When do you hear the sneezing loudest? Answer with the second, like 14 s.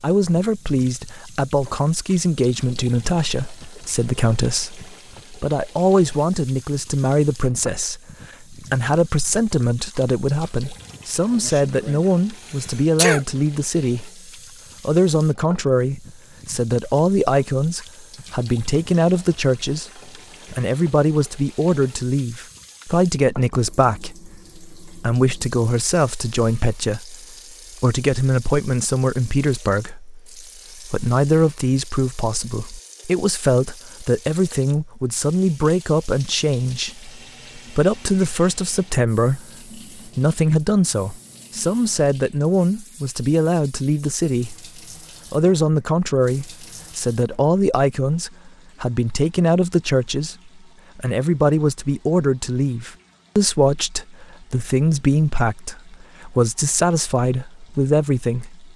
13 s.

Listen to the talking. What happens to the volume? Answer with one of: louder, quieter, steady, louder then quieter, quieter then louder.
steady.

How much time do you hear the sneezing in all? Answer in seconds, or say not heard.
2 s.